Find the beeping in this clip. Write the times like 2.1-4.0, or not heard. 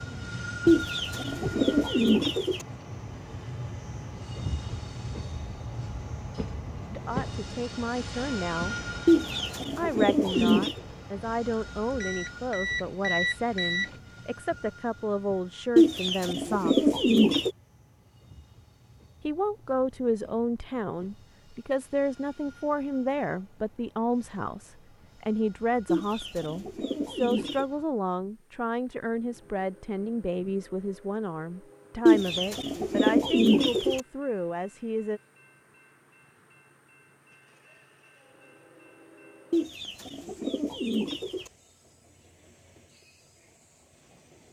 12.0-13.9.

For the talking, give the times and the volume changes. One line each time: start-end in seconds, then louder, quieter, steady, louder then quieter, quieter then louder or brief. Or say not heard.
6.9-8.8 brief
9.8-16.9 steady
19.2-35.2 steady.